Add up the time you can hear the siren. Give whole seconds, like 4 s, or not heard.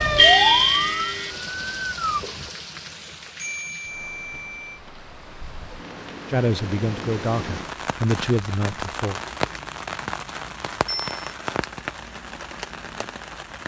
2 s.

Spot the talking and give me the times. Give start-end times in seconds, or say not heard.
6.3-9.2.